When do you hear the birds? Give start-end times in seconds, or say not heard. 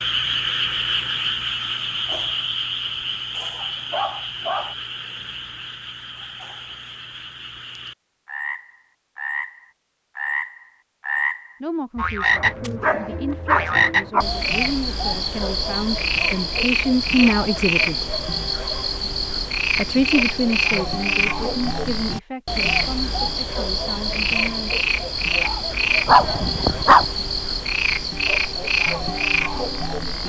not heard.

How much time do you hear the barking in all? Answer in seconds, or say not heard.
4 s.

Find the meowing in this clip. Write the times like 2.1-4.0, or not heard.
not heard.